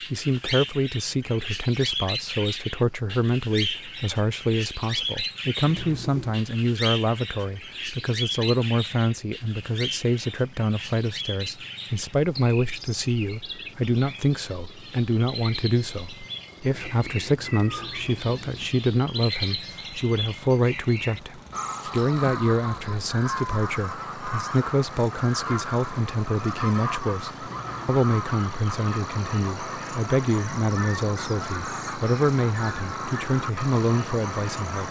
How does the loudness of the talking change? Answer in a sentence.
The volume of the talking stays about the same.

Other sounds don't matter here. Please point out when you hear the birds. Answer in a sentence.
The birds can be heard from 0.0 to 34.8 s.